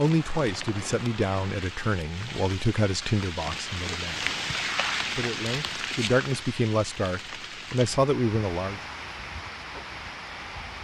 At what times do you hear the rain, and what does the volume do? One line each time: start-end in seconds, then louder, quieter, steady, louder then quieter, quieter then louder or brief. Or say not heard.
0.0-10.8 louder then quieter.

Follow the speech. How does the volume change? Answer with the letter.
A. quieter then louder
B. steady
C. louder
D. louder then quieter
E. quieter
A.